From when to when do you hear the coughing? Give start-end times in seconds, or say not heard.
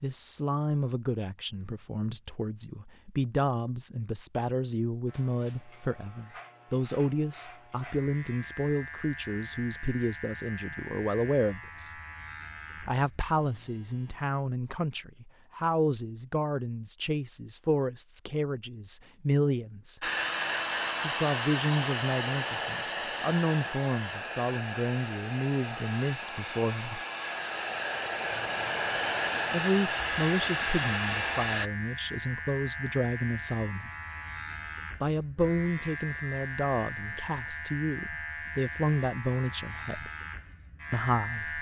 not heard.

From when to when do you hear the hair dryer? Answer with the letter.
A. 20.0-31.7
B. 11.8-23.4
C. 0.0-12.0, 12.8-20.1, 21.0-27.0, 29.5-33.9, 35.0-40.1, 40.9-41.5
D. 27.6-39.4
A.